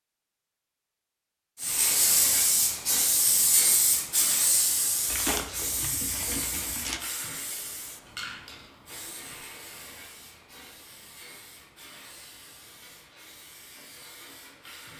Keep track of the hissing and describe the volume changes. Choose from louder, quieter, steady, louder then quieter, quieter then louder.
quieter.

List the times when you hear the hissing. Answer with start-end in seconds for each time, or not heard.
1.6-14.9.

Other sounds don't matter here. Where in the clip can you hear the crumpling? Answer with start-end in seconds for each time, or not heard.
5.0-7.0.